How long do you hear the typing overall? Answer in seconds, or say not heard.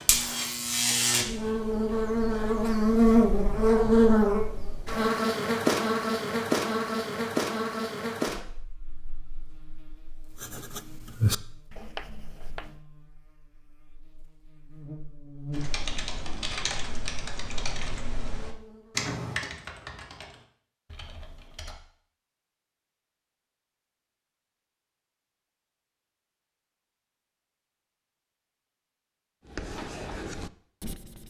6 s.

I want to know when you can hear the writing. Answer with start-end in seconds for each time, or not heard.
10.3-12.8, 29.4-31.2.